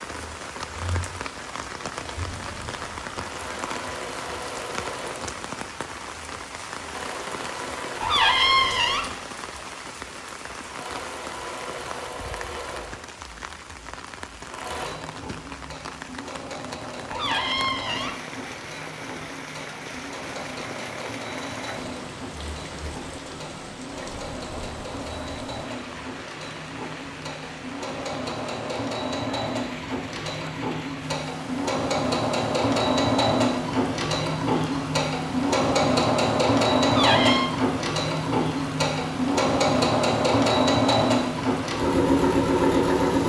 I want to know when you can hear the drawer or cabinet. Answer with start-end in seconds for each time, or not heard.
8.0-9.1, 17.1-18.2, 36.9-37.5.